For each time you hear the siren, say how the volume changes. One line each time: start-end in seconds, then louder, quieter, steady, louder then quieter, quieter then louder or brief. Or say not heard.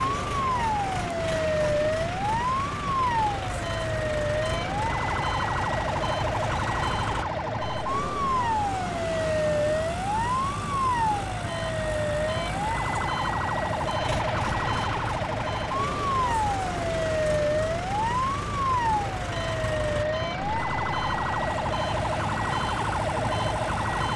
0.0-24.1 steady.